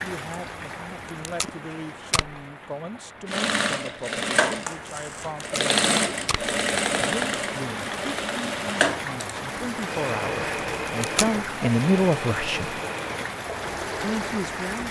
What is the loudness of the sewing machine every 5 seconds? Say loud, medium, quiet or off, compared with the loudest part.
loud, loud, medium.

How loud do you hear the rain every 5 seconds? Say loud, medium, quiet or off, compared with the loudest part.
medium, loud, loud.